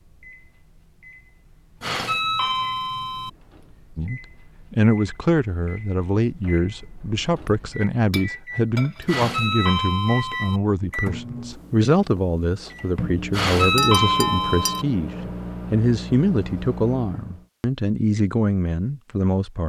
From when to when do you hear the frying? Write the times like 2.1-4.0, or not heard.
not heard.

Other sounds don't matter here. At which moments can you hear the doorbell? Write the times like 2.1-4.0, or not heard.
1.8-3.3, 9.1-10.6, 13.3-14.8.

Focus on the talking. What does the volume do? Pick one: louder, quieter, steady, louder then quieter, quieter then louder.
steady.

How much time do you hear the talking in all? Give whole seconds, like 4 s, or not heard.
16 s.